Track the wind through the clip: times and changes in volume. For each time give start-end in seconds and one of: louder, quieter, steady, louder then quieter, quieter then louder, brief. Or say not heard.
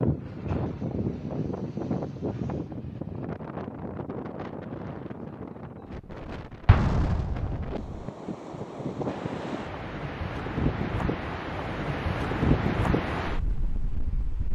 0.0-14.5 quieter then louder.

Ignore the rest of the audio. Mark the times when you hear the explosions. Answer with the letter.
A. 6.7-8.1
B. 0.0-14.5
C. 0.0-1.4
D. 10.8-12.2
A.